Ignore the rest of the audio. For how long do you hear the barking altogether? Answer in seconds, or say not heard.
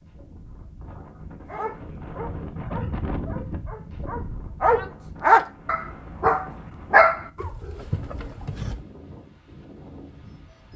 7 s.